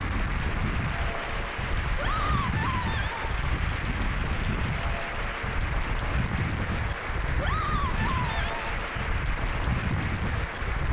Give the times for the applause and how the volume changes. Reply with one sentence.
The applause can be heard from 0.0 to 10.8 s, at a steady volume.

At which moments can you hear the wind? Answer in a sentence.
The wind can be heard from 0.0 to 10.8 s.